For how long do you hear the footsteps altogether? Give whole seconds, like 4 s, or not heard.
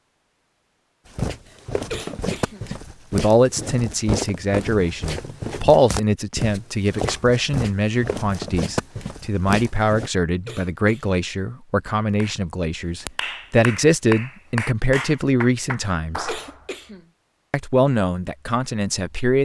9 s.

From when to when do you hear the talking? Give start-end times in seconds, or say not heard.
3.1-16.3, 17.5-19.4.